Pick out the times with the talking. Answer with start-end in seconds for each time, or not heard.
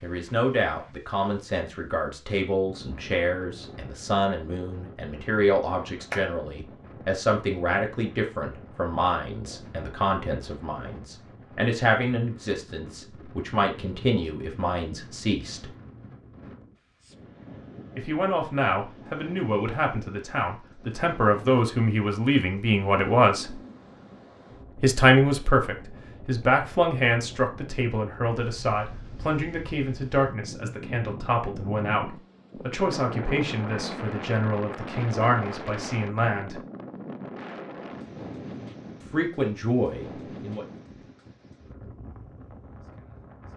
0.0-15.7, 17.9-23.6, 24.8-36.6, 39.1-40.6.